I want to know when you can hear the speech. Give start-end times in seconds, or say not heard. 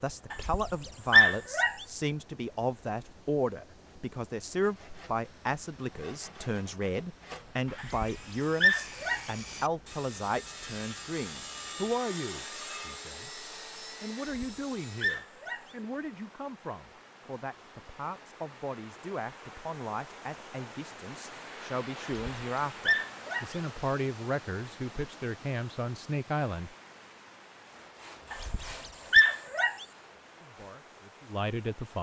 0.0-26.8, 30.4-31.9.